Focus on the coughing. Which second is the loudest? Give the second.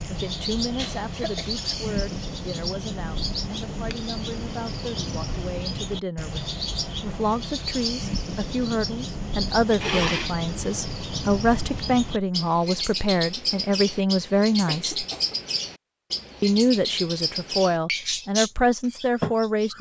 10 s.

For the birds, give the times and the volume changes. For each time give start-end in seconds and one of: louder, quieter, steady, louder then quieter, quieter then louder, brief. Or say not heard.
0.0-19.7 steady.